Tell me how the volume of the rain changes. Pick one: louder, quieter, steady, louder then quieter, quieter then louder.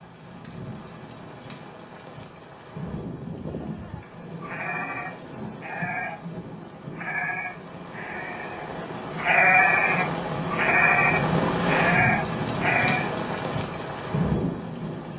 louder.